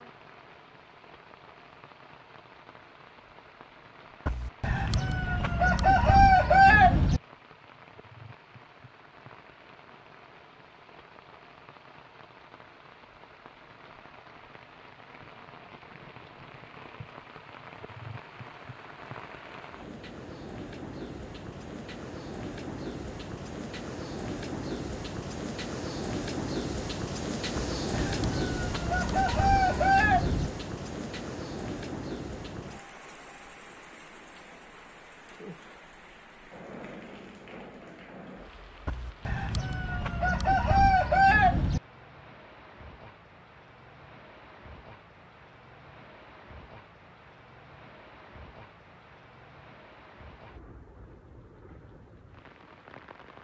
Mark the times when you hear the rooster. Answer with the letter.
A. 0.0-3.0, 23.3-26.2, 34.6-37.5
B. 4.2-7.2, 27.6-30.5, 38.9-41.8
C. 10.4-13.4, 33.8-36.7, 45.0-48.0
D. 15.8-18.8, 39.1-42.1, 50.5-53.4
B.